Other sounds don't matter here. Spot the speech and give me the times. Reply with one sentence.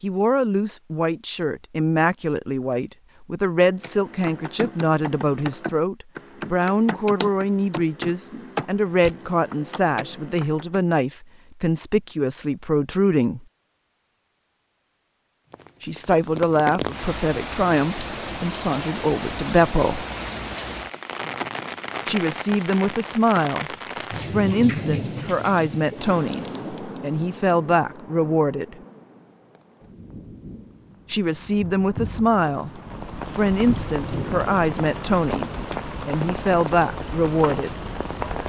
You can hear the speech from 0.0 to 13.4 s, from 15.8 to 20.1 s, from 22.1 to 23.7 s, from 24.3 to 28.8 s, from 31.1 to 32.7 s and from 33.4 to 37.8 s.